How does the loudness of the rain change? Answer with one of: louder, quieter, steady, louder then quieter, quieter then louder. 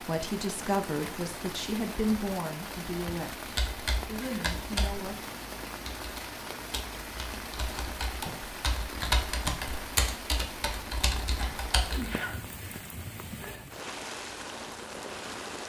steady.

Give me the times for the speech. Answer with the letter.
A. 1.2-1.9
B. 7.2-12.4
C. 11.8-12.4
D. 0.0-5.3
D.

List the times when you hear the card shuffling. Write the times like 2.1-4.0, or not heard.
not heard.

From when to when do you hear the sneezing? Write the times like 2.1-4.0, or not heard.
11.8-12.4.